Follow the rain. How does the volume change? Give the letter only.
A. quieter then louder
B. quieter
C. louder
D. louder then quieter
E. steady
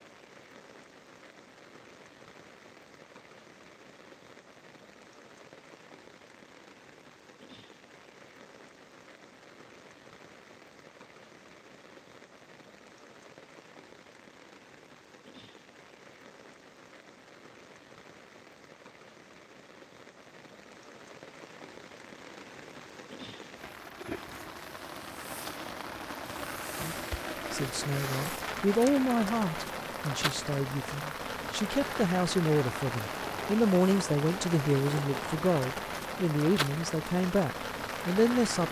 C.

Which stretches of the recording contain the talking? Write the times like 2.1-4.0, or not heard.
26.8-38.6.